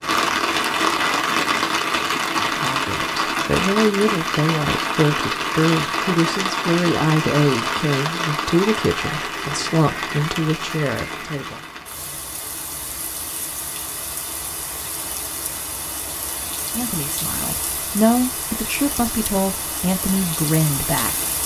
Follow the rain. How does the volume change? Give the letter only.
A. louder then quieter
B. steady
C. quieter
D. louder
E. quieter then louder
C.